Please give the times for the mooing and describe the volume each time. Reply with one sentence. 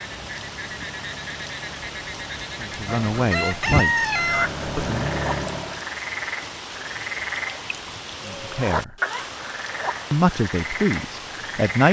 The mooing can't be heard in this clip.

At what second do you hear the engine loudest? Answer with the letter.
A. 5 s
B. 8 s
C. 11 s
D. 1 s
A.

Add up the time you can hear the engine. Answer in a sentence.
The engine can be heard for 6 seconds in total.